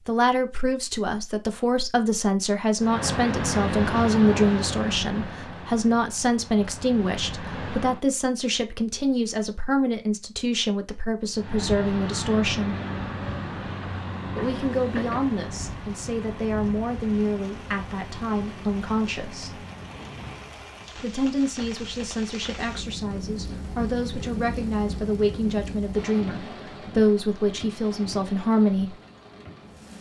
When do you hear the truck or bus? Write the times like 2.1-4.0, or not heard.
2.8-8.0, 11.3-20.6.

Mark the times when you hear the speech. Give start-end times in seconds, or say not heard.
0.1-12.8, 14.3-19.6, 20.9-28.9.